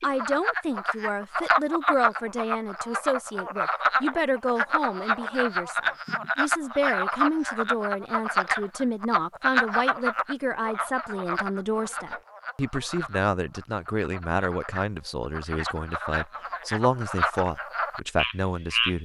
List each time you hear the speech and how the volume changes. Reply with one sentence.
You can hear the speech from 0.0 to 19.0 s, at a steady volume.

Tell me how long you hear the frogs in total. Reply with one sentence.
The frogs can be heard for 19 seconds in total.